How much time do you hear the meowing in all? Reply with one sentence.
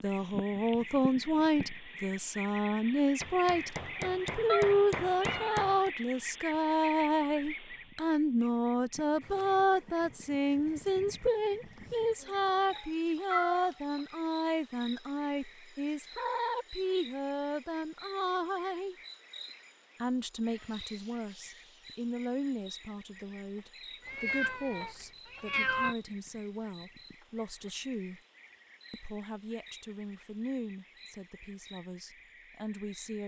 You can hear the meowing for 4 seconds altogether.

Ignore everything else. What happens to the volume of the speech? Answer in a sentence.
The volume of the speech goes down.